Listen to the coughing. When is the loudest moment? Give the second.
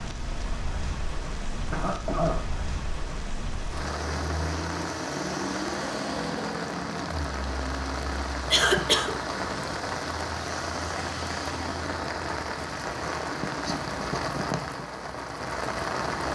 9 s.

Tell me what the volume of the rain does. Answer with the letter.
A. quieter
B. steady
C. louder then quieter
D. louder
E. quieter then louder
D.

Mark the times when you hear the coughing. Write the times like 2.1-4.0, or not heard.
1.7-2.4, 8.5-9.1.